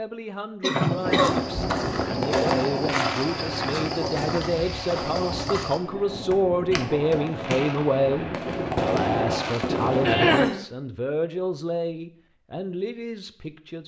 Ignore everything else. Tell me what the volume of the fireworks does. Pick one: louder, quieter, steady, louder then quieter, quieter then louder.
quieter then louder.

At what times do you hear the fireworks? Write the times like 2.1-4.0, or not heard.
1.0-10.5.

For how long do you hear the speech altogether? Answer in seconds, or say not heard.
14 s.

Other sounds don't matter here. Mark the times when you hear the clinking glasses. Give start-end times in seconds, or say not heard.
not heard.